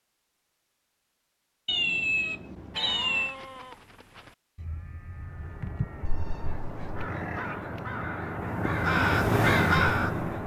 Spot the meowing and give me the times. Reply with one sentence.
The meowing can be heard from 1.6 to 3.4 s and from 6.0 to 7.0 s.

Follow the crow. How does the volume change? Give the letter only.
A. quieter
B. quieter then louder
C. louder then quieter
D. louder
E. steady
D.